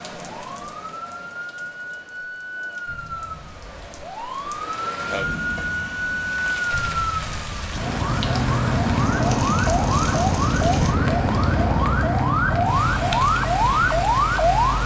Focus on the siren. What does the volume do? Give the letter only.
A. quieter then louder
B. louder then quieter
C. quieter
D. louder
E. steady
D.